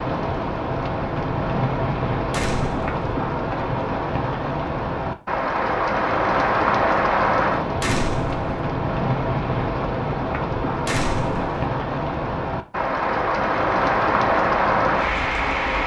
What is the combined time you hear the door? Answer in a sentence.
The door can be heard for 2 seconds in total.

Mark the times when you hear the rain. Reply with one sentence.
The rain can be heard from 0.0 to 15.8 s.